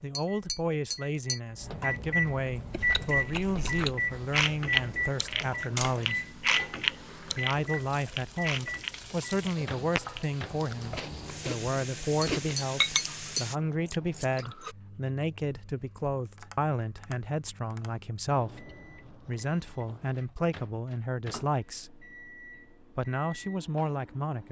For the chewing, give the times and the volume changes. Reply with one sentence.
The chewing can be heard from 2.7 to 14.8 s, getting quieter then louder.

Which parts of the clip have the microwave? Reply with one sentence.
The microwave can be heard from 0.1 to 24.4 s.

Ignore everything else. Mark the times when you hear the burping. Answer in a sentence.
The burping can't be heard in this clip.